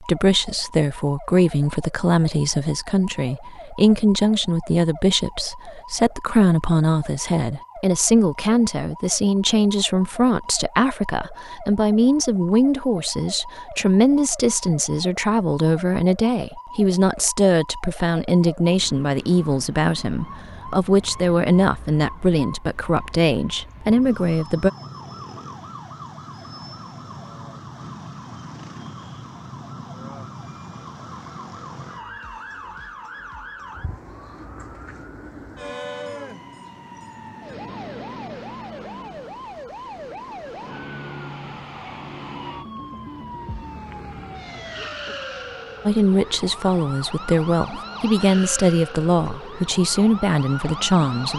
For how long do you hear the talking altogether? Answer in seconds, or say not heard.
30 s.